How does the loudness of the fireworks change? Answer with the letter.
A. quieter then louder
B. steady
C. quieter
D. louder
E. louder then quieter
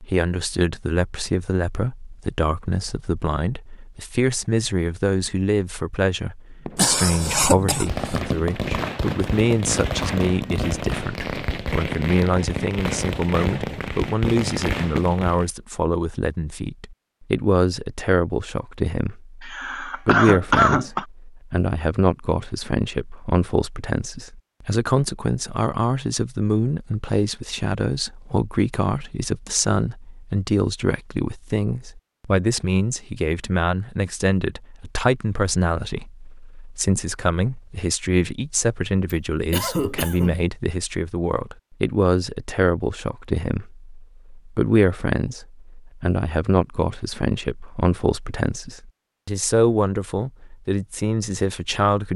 B.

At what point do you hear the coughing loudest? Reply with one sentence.
The loudest moment of the coughing is at 21 seconds.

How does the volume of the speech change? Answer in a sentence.
The loudness of the speech stays about the same.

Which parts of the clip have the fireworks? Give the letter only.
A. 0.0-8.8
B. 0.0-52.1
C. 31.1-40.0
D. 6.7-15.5
D.